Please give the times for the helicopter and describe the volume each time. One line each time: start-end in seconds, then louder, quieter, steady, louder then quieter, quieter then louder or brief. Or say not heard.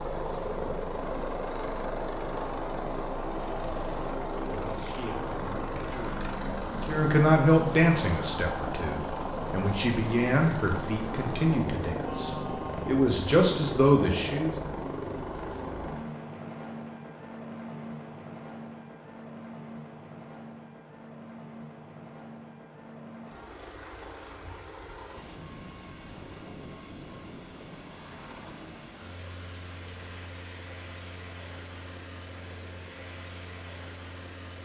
0.0-34.6 quieter.